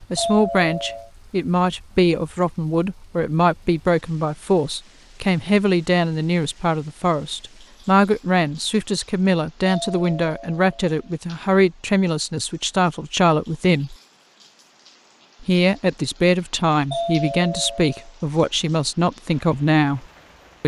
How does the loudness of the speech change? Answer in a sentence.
The volume of the speech stays about the same.